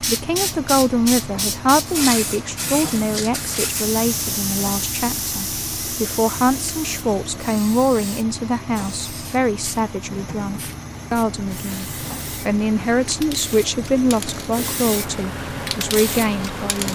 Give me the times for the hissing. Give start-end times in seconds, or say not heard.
0.0-16.8.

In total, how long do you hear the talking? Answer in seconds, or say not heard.
17 s.